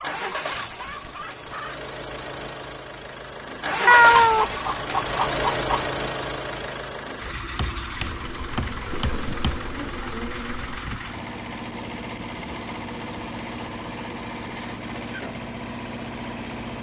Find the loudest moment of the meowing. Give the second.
4 s.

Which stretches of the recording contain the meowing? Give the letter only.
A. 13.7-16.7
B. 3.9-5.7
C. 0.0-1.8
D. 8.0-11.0
B.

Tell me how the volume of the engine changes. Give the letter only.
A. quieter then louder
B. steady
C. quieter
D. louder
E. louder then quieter
E.